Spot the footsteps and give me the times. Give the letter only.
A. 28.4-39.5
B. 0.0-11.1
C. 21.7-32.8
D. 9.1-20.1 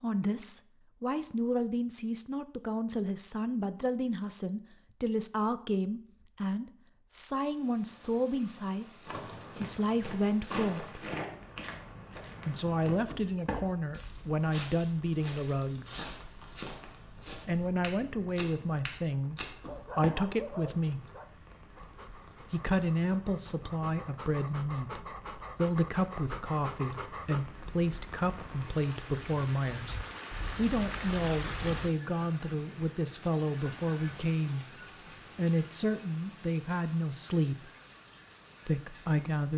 D.